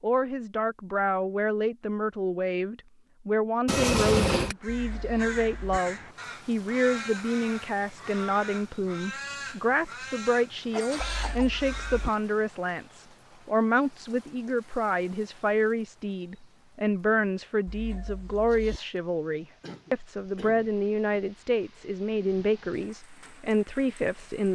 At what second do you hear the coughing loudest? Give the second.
4 s.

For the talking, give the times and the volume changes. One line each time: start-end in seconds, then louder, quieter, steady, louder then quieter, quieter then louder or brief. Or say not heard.
0.0-24.5 steady.